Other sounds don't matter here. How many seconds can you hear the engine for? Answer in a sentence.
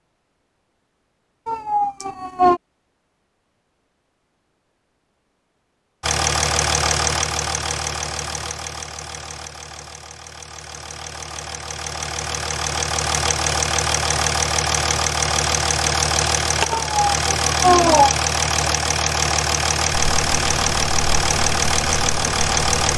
The engine can be heard for 17 seconds in total.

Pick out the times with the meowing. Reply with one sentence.
The meowing can be heard from 1.4 to 2.6 s and from 16.7 to 18.1 s.